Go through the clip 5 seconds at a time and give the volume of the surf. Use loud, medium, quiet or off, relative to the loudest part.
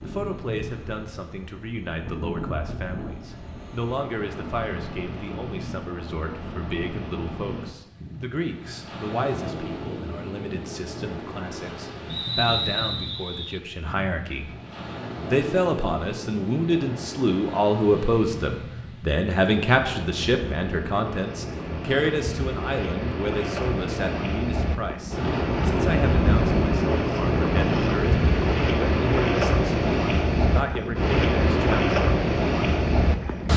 quiet, quiet, quiet, quiet, medium, loud, loud.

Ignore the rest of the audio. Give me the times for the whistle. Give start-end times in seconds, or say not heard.
12.1-13.6.